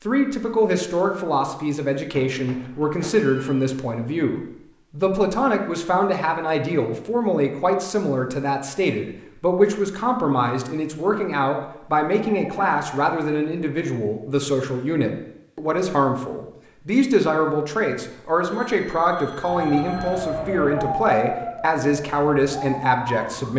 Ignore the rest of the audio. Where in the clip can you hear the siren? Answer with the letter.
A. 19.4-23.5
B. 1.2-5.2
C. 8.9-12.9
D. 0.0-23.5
A.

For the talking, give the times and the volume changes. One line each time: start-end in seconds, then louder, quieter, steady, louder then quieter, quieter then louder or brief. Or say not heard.
0.0-23.5 steady.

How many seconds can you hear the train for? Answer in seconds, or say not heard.
not heard.